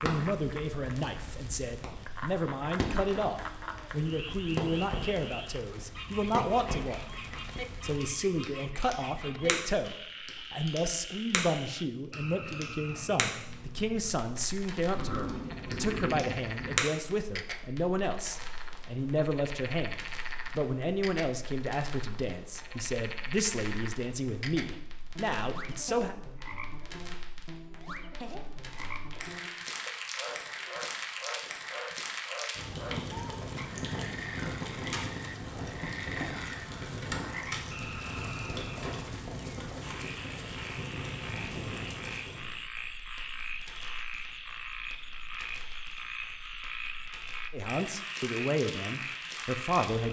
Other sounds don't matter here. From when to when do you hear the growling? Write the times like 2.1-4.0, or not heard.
14.9-16.9.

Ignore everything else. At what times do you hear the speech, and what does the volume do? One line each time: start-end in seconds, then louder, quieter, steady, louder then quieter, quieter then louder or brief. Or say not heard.
0.0-26.1 steady
47.5-50.0 brief.